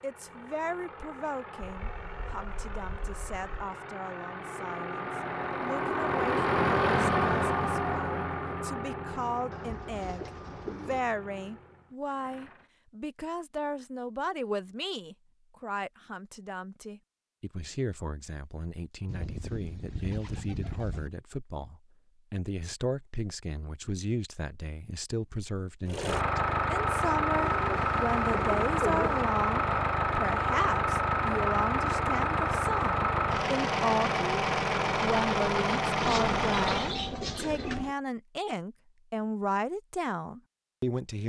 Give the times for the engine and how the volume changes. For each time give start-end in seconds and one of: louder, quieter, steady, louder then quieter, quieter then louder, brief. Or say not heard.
0.0-12.7 louder then quieter
25.9-37.0 steady.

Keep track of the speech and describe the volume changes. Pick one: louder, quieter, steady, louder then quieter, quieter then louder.
louder.